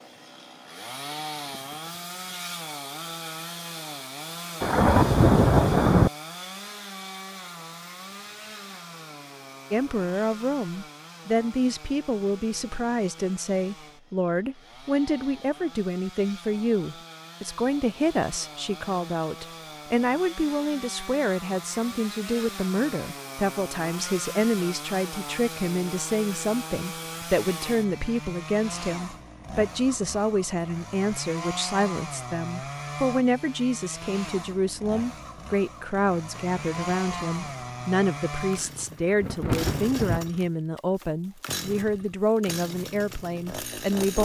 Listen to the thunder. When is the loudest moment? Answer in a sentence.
The volume of the thunder peaks at 5 seconds.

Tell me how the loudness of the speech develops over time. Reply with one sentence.
The volume of the speech stays about the same.